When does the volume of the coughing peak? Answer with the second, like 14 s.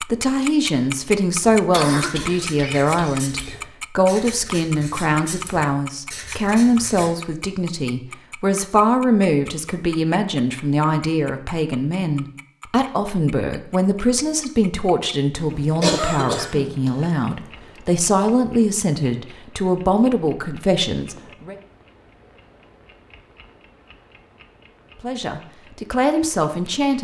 16 s.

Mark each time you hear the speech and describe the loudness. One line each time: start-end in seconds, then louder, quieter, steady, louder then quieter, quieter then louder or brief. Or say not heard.
0.0-21.6 steady
25.0-26.9 brief.